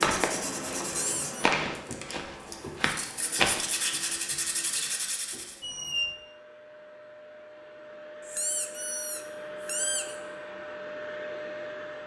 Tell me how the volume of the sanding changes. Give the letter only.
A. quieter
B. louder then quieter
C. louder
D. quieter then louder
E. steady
D.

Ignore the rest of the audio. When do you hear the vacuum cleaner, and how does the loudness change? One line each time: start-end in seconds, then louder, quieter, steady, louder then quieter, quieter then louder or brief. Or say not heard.
0.0-12.0 quieter then louder.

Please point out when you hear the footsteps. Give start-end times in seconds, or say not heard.
0.0-4.2.